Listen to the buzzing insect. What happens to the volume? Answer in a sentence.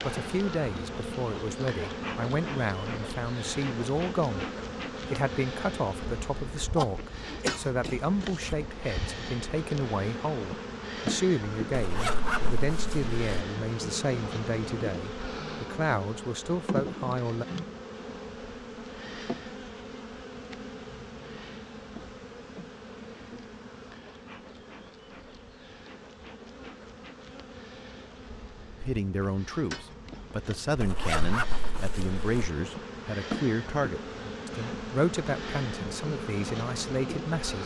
The loudness of the buzzing insect goes down, then up.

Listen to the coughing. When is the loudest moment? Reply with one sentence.
The loudest moment of the coughing is at 7 seconds.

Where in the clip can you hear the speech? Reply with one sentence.
The speech can be heard from 0.0 to 4.5 s, from 5.1 to 17.4 s and from 28.8 to 37.6 s.